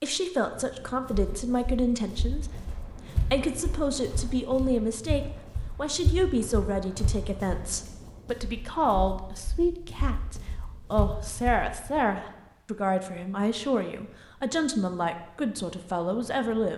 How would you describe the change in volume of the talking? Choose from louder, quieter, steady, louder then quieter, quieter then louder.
steady.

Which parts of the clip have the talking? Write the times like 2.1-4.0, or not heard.
0.0-16.7.